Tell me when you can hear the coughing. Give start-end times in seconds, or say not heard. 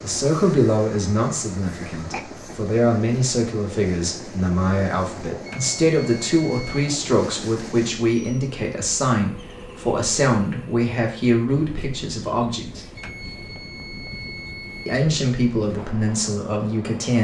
1.6-2.2.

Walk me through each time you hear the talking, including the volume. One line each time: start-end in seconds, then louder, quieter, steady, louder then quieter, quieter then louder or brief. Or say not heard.
0.0-12.8 steady
14.8-17.1 brief.